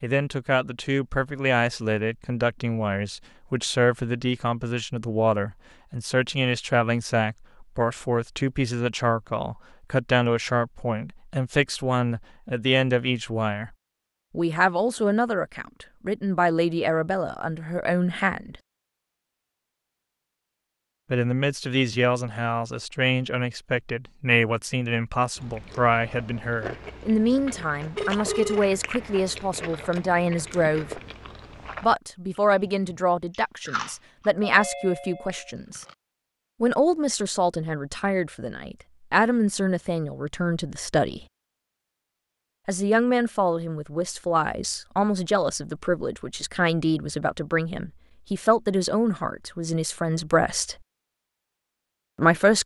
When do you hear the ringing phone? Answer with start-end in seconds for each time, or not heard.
27.9-28.6.